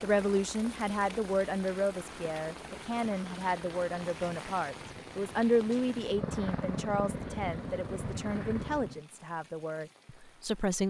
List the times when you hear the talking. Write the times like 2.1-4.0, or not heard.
0.0-10.8.